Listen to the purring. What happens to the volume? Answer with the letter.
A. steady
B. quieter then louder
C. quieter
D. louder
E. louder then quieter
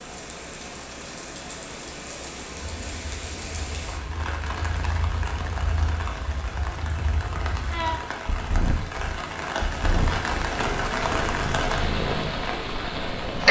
D.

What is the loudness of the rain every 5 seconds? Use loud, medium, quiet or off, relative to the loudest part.
medium, medium, loud.